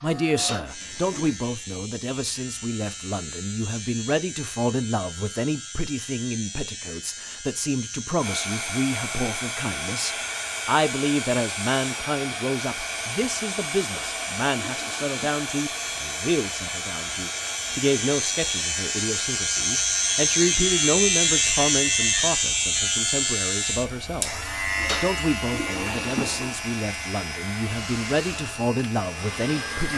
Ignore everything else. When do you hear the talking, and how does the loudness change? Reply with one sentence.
You can hear the talking from 0.0 to 29.9 s, at a steady volume.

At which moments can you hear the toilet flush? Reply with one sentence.
The toilet flush can be heard from 0.3 to 1.3 s, from 13.8 to 15.3 s and from 24.8 to 26.6 s.